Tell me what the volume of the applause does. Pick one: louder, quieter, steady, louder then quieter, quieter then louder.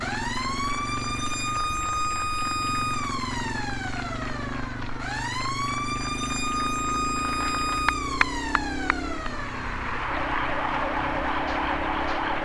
louder.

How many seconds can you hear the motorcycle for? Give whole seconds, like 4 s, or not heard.
12 s.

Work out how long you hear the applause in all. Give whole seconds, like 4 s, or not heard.
12 s.